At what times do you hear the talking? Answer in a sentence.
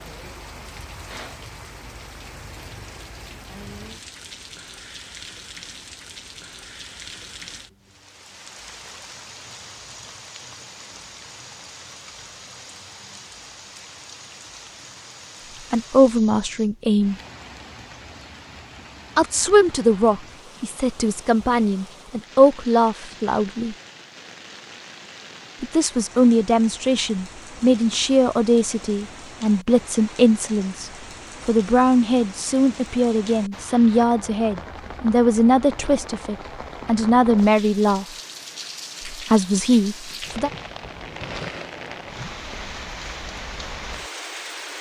You can hear the talking from 15.7 to 17.1 s, from 19.1 to 23.8 s, from 25.6 to 38.0 s and from 39.0 to 40.5 s.